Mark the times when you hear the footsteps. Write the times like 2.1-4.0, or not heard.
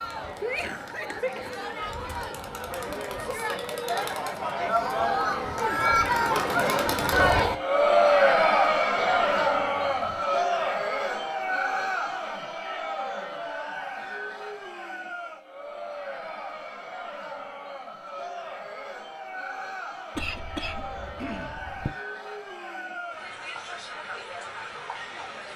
not heard.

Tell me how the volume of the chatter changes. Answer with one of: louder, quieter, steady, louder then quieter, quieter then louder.
louder then quieter.